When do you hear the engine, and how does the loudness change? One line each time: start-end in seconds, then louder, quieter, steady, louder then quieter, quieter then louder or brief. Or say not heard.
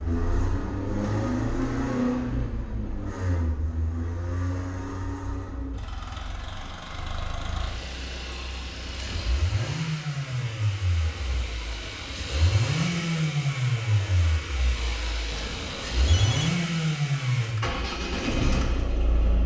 0.0-19.4 quieter then louder.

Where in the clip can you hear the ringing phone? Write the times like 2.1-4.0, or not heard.
15.3-16.5.